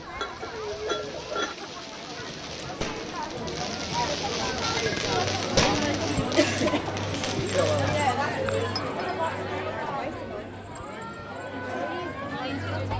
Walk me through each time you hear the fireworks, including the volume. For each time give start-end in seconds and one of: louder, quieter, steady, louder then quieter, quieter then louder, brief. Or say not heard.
0.0-8.1 louder then quieter.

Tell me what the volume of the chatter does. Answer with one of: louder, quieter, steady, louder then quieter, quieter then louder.
louder then quieter.